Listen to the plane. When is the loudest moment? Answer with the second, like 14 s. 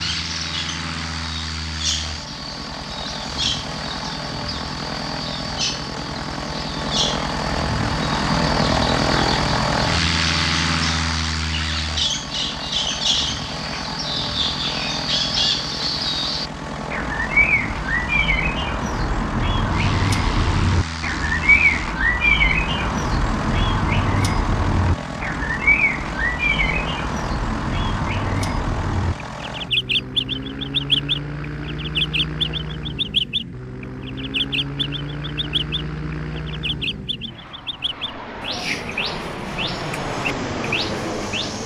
9 s.